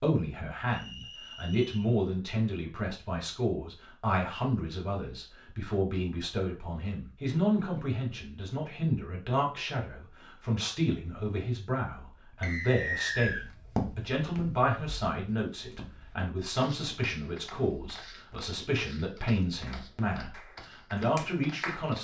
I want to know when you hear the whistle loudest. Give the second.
13 s.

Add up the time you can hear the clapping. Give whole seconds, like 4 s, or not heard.
2 s.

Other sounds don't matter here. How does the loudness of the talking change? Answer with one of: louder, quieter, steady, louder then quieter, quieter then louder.
steady.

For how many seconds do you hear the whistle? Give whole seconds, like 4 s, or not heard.
2 s.